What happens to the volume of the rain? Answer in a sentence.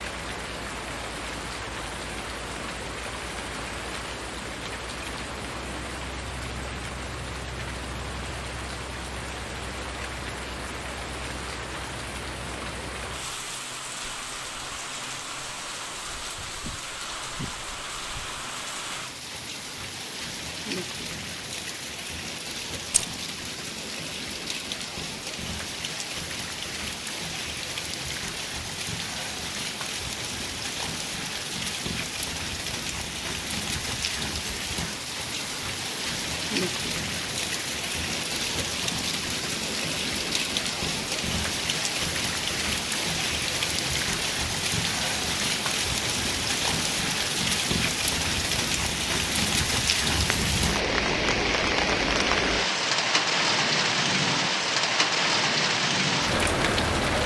The volume of the rain goes up.